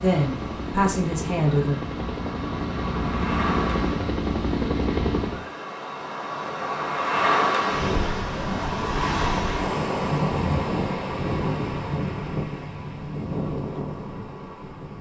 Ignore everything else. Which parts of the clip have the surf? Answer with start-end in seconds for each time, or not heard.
0.0-14.9.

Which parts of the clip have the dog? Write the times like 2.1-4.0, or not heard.
not heard.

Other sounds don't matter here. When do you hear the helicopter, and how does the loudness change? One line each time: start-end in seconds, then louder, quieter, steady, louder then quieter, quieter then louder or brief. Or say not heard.
0.0-5.5 louder.